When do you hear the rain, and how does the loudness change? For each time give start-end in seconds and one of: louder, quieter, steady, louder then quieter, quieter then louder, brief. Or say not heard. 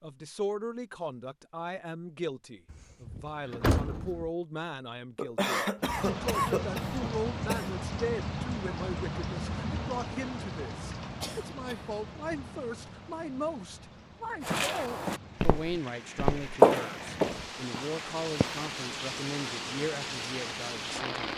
5.8-21.3 quieter then louder.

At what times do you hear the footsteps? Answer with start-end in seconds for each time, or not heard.
14.4-18.7.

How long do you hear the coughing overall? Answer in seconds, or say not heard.
3 s.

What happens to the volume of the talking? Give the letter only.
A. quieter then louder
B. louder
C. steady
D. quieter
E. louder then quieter
C.